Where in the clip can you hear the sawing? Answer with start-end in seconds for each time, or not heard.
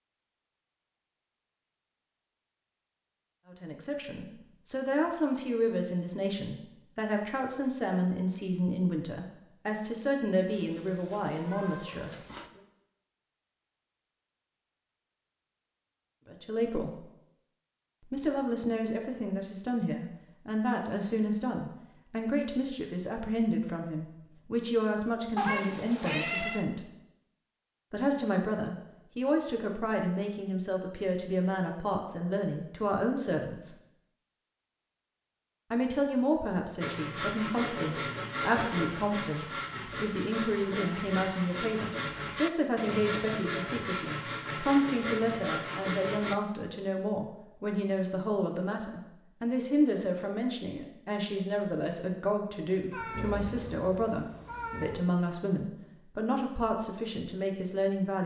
36.8-46.4.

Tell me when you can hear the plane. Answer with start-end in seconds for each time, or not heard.
not heard.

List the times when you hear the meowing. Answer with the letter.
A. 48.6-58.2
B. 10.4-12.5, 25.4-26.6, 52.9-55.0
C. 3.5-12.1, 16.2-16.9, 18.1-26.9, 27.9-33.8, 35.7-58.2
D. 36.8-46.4
B.